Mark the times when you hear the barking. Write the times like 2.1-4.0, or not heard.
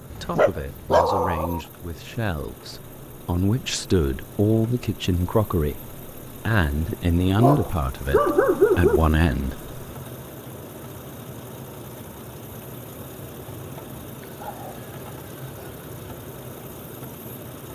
0.1-1.6, 7.3-9.0, 14.2-15.8.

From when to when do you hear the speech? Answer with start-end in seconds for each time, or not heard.
0.2-9.7.